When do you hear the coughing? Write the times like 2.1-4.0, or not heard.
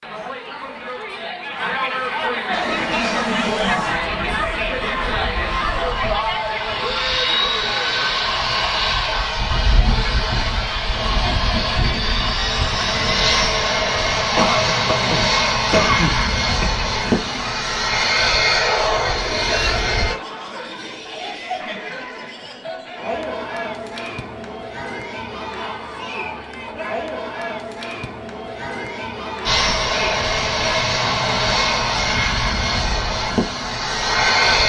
14.3-16.8.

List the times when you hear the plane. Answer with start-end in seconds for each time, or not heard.
2.5-20.1, 29.4-34.6.